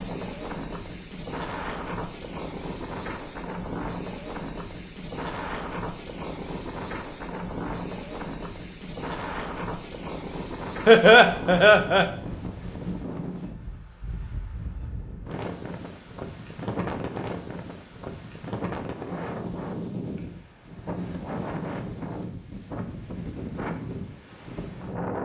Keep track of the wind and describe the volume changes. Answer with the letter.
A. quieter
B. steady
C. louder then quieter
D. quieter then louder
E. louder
B.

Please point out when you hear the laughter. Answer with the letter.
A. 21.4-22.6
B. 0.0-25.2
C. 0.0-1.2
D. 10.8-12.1
D.